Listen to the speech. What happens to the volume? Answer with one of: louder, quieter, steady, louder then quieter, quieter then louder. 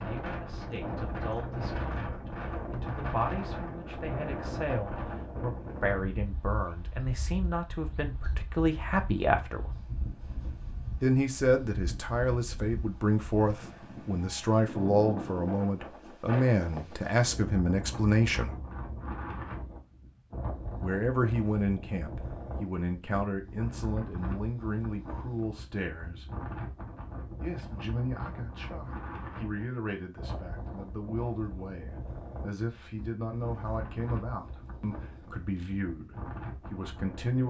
louder then quieter.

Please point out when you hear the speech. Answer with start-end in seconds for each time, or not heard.
0.0-9.7, 11.0-18.6, 20.8-26.2, 27.4-37.4.